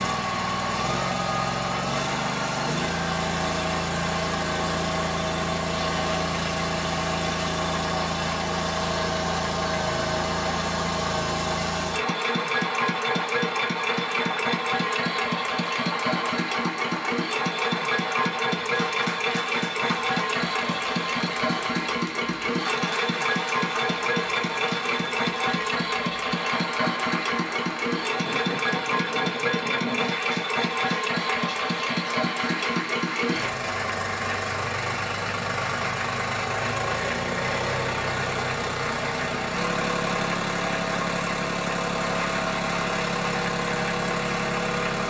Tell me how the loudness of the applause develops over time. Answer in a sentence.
The volume of the applause stays about the same.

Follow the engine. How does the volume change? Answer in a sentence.
The volume of the engine stays about the same.